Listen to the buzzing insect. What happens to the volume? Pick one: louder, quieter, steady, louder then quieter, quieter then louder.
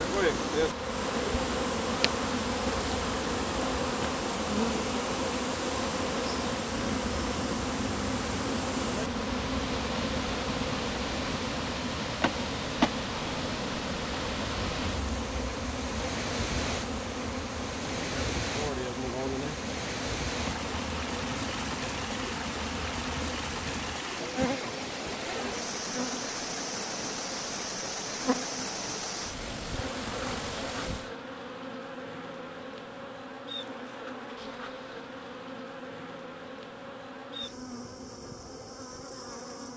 quieter.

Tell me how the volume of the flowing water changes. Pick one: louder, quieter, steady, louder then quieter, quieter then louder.
steady.